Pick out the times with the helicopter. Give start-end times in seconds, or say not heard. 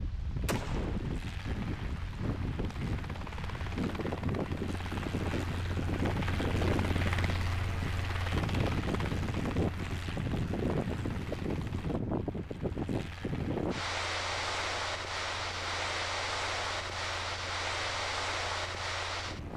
0.1-19.5.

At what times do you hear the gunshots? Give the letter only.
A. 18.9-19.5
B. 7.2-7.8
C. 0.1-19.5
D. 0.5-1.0
D.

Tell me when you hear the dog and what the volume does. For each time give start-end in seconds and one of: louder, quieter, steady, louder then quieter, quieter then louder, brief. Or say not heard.
not heard.